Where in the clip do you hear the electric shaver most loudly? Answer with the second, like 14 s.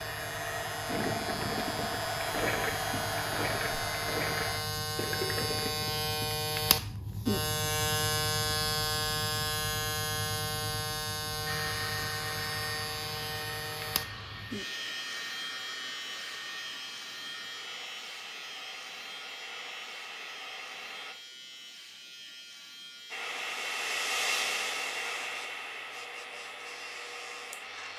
8 s.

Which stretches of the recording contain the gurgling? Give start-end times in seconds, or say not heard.
0.8-6.1.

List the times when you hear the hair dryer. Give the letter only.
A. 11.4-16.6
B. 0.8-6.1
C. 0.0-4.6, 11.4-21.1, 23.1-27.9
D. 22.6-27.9
C.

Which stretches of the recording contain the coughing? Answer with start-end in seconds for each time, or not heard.
not heard.